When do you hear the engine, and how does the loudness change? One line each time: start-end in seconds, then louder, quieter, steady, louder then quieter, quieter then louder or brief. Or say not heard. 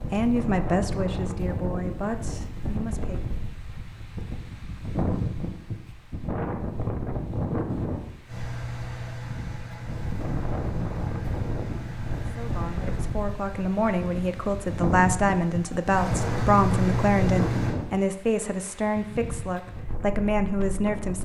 8.2-17.8 quieter then louder.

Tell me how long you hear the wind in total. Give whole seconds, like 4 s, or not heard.
21 s.